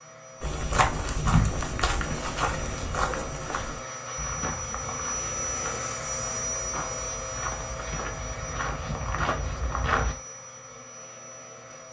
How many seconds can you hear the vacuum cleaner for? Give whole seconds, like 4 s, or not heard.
12 s.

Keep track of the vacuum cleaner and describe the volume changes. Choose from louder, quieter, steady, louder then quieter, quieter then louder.
louder then quieter.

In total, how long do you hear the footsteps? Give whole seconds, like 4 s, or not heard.
10 s.